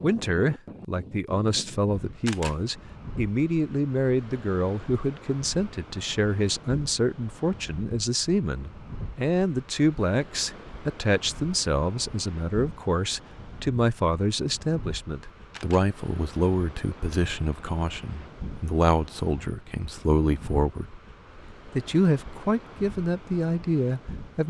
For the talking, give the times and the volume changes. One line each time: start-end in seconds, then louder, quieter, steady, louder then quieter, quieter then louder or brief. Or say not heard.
0.0-20.9 steady
21.8-24.4 brief.